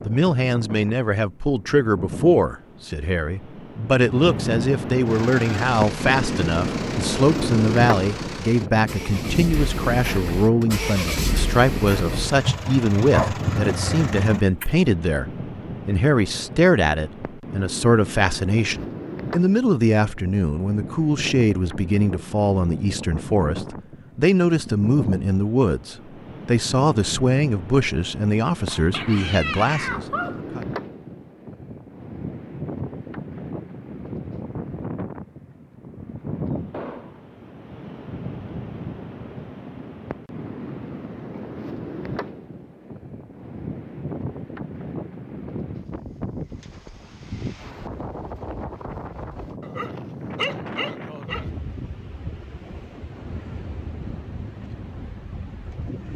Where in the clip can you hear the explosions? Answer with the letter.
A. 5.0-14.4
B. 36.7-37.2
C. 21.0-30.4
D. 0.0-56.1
B.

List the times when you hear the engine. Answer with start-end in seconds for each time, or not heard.
5.0-14.4.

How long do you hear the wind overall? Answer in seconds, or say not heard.
56 s.